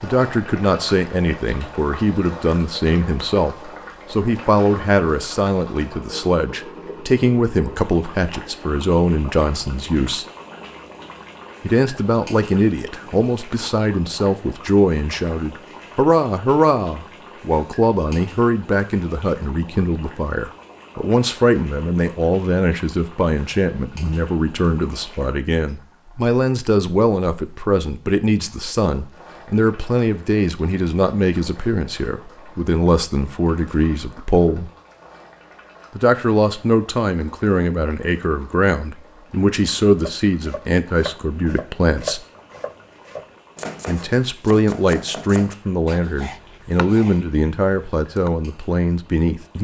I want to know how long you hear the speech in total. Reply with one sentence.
You can hear the speech for 45 seconds altogether.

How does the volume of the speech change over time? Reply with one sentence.
The volume of the speech stays about the same.